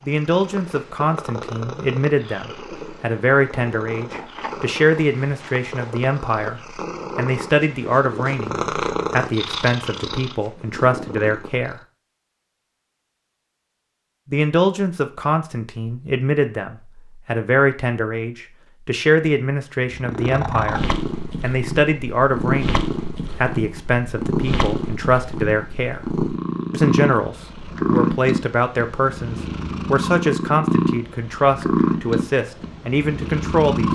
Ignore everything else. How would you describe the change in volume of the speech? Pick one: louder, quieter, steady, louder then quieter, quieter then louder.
steady.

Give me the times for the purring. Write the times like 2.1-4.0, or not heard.
0.0-11.8, 19.9-33.9.